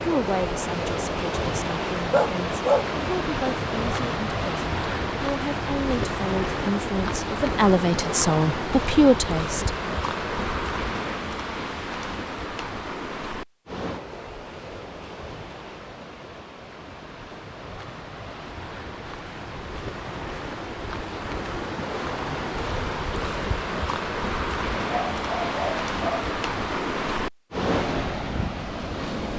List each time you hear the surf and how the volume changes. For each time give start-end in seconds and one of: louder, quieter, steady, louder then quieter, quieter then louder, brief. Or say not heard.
0.0-29.3 quieter then louder.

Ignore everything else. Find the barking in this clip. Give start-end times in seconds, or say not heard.
1.9-2.9, 24.8-26.3.